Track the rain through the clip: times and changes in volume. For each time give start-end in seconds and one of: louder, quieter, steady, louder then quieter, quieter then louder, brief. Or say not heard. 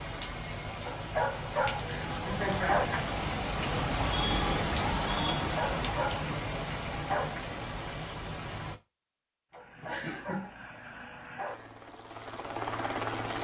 0.0-8.8 louder then quieter.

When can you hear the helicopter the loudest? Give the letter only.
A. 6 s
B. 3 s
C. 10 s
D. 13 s
D.